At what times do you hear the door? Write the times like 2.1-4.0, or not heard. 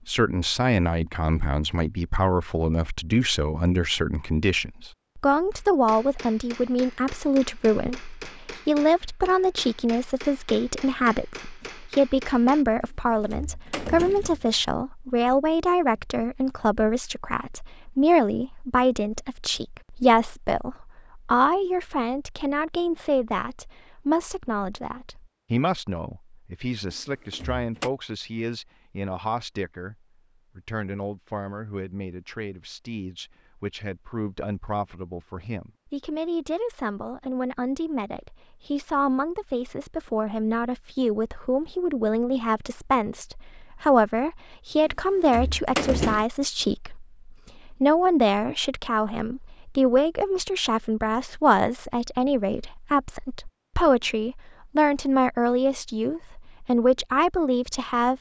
12.8-14.7, 26.9-27.9, 44.9-46.2.